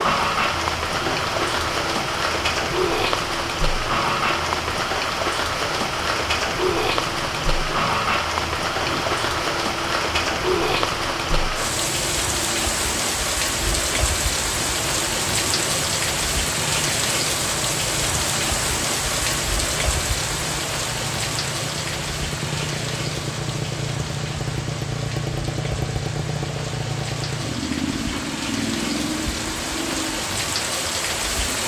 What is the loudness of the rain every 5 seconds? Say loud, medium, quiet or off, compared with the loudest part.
loud, loud, loud, loud, medium, medium, loud.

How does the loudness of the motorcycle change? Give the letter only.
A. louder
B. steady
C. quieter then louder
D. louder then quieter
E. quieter
A.